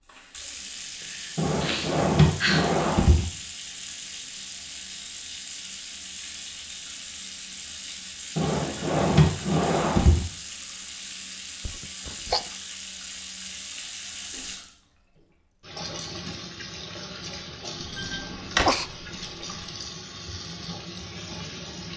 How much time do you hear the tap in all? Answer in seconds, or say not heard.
22 s.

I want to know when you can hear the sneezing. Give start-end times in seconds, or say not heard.
1.0-2.8, 11.7-12.4, 17.9-18.9.